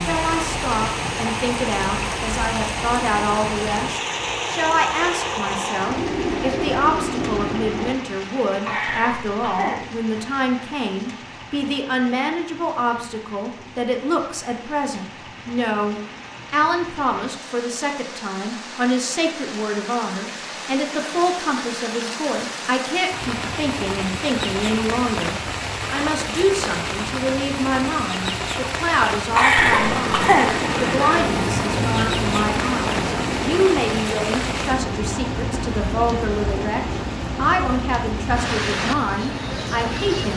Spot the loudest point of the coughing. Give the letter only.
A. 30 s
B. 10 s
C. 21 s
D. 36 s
A.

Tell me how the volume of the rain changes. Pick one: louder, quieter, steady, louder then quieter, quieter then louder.
quieter then louder.